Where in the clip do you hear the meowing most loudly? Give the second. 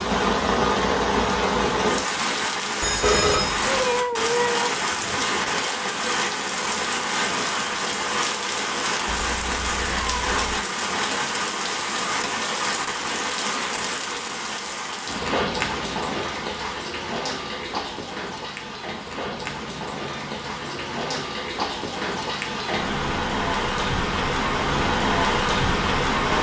4 s.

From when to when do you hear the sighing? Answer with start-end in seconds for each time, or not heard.
not heard.